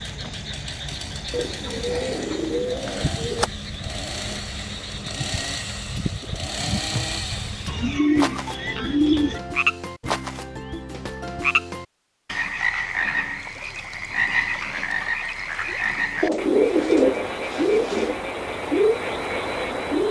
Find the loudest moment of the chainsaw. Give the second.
7 s.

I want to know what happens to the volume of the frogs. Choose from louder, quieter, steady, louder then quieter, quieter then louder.
louder.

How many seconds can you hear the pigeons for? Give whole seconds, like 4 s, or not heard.
6 s.